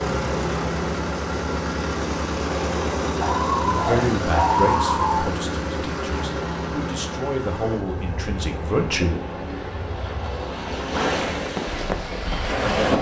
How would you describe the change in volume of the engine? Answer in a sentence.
The loudness of the engine goes down.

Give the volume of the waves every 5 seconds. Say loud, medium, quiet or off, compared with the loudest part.
medium, medium, loud.